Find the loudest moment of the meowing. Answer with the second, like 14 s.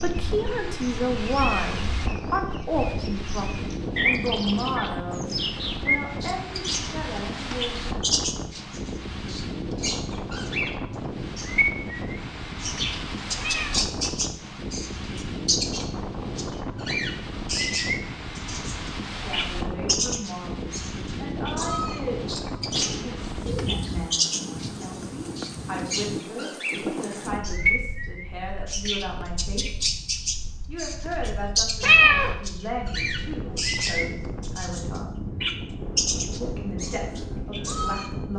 32 s.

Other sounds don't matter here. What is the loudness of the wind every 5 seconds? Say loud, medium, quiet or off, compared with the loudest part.
loud, loud, loud, loud, loud, loud, medium, loud.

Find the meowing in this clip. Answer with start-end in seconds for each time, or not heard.
1.4-1.9, 13.3-13.9, 31.8-32.4.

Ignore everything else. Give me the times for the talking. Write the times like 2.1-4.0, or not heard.
0.0-7.9, 19.1-29.8, 30.6-35.1, 36.4-38.3.